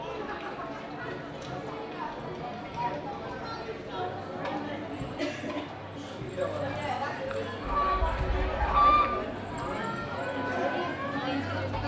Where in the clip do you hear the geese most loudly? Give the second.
9 s.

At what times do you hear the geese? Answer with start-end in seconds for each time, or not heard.
7.6-9.2.